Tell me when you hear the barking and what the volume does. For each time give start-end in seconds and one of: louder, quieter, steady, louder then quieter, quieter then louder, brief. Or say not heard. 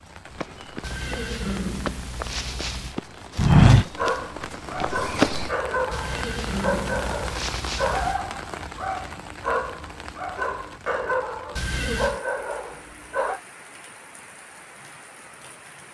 3.9-13.4 steady.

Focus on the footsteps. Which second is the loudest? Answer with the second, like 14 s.
4 s.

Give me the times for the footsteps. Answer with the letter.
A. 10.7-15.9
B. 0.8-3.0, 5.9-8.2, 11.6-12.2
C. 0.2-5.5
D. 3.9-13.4
C.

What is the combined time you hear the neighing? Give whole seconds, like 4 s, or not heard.
5 s.